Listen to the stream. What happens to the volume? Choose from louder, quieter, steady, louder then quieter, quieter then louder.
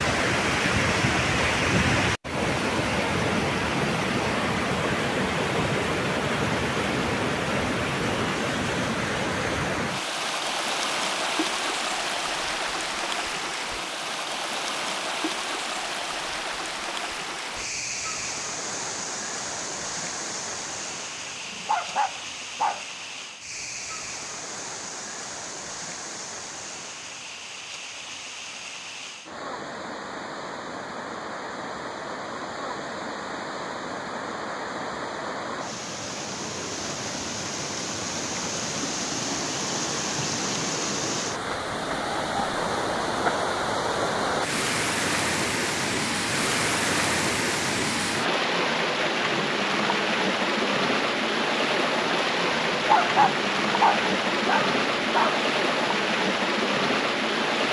quieter then louder.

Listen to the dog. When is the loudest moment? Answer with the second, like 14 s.
53 s.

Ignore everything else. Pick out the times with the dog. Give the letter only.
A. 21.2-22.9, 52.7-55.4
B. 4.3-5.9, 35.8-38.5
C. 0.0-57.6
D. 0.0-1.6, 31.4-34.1
A.